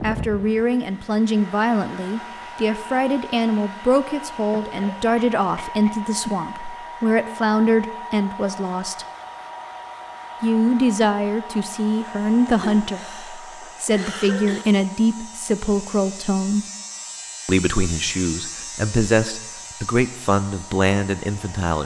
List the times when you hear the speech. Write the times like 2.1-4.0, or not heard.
0.0-9.1, 10.4-16.6, 17.4-21.8.